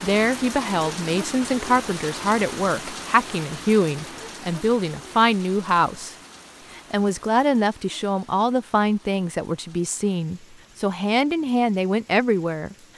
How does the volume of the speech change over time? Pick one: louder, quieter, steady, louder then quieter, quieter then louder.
steady.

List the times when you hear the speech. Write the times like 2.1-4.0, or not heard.
0.0-6.2, 6.8-12.8.